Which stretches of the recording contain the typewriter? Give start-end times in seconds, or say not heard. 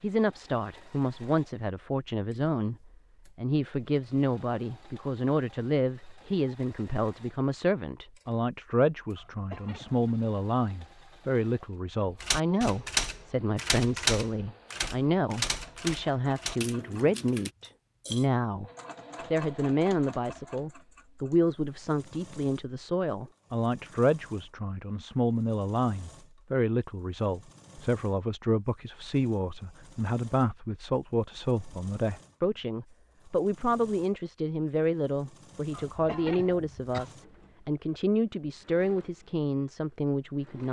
12.1-17.5.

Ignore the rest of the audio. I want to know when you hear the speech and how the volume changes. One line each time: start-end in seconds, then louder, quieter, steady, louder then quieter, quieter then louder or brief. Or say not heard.
0.0-40.6 steady.